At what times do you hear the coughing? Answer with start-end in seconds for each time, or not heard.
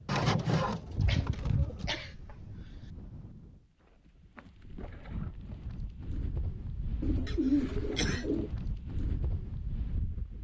1.1-3.0, 7.2-8.2.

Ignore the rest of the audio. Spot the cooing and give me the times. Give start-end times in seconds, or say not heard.
0.1-2.0, 7.0-8.5.